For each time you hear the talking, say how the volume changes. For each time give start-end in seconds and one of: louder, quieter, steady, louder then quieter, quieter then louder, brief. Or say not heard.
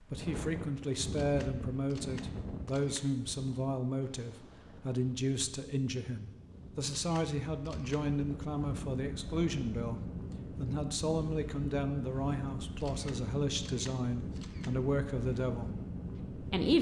0.0-16.7 steady.